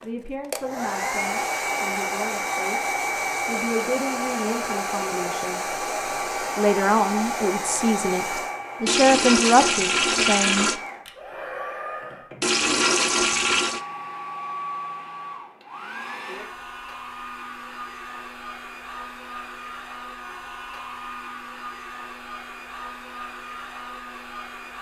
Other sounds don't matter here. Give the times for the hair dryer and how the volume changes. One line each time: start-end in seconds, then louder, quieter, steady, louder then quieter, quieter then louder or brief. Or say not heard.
0.0-24.7 quieter.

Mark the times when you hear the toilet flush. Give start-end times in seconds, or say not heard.
8.8-10.8, 12.4-13.8.